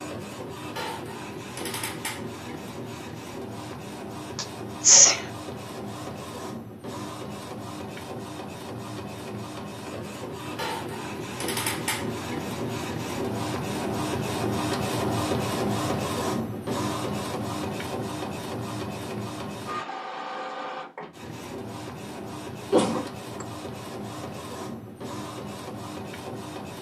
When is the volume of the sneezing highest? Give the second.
5 s.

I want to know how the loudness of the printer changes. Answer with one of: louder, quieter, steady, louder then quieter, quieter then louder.
louder then quieter.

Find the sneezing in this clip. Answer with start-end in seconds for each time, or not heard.
4.3-5.2, 22.7-23.4.